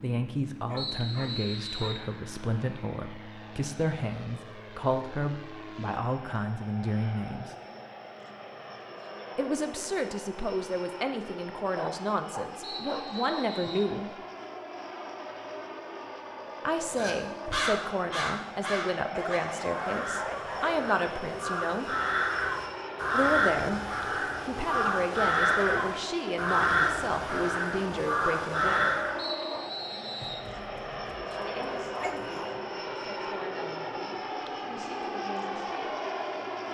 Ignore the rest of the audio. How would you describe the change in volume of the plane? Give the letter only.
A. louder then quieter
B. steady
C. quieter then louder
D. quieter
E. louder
E.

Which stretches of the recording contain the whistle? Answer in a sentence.
The whistle can be heard from 0.8 to 2.0 s, from 12.6 to 13.9 s and from 29.1 to 30.4 s.